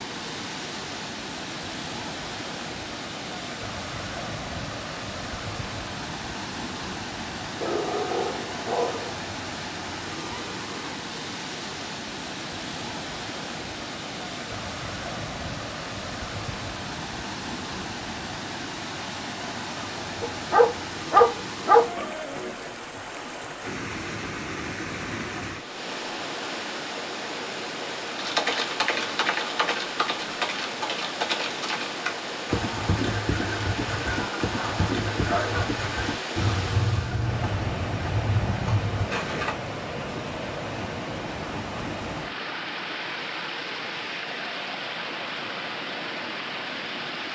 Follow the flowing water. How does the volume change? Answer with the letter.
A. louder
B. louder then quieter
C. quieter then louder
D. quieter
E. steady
E.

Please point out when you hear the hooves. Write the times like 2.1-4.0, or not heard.
28.1-39.5.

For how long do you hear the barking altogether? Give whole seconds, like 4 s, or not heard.
5 s.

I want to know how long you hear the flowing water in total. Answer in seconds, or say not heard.
47 s.